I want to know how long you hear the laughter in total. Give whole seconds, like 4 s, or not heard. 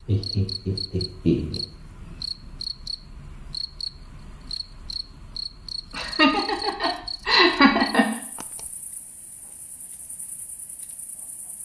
4 s.